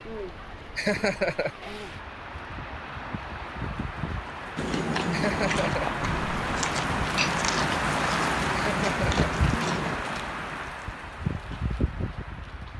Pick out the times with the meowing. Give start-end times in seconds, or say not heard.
not heard.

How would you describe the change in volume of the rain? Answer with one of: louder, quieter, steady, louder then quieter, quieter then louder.
louder then quieter.